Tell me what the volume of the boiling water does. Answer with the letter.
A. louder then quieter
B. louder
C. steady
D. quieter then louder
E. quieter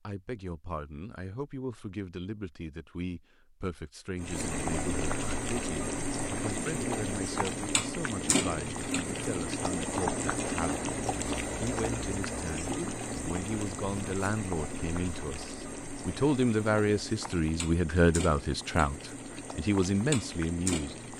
E.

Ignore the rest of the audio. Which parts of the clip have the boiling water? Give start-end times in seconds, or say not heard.
4.2-21.1.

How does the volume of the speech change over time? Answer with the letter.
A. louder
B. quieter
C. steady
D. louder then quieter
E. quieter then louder
A.